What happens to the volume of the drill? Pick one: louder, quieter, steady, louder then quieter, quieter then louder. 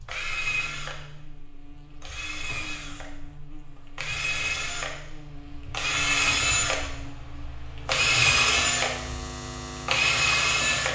louder.